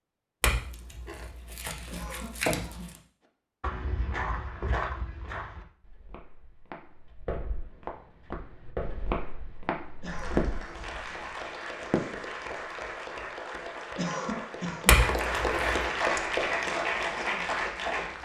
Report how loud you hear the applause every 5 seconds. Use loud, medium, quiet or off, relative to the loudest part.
off, off, medium, loud.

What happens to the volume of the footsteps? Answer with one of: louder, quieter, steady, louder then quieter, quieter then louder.
quieter then louder.